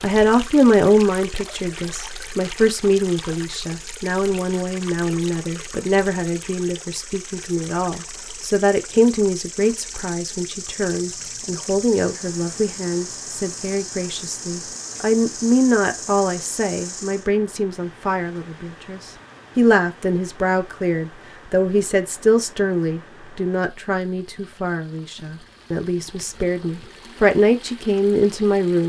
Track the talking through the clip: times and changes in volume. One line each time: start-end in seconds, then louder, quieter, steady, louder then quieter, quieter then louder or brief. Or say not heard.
0.0-28.8 steady.